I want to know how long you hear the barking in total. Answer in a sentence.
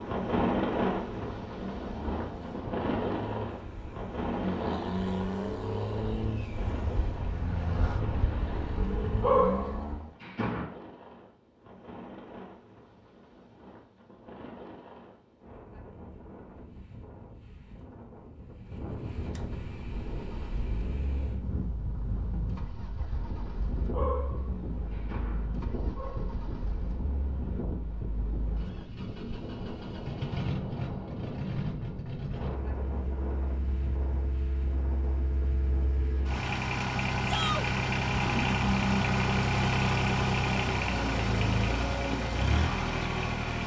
The barking can be heard for 4 seconds in total.